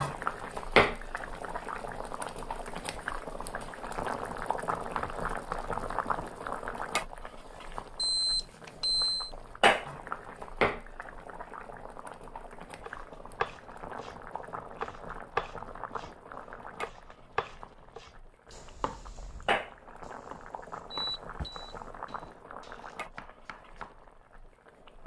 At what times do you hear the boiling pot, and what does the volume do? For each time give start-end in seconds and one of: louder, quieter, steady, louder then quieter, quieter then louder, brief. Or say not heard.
0.0-25.0 quieter.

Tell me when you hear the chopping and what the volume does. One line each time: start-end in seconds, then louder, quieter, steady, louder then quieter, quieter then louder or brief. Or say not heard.
12.8-24.1 quieter.